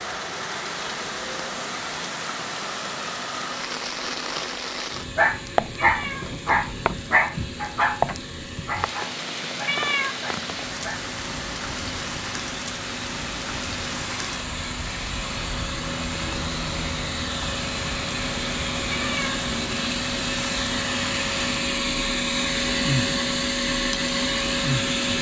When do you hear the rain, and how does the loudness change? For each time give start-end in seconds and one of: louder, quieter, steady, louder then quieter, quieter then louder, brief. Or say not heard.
0.0-25.1 steady.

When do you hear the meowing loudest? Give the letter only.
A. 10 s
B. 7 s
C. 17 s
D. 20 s
A.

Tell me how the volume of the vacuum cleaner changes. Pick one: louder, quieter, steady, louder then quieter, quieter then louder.
louder.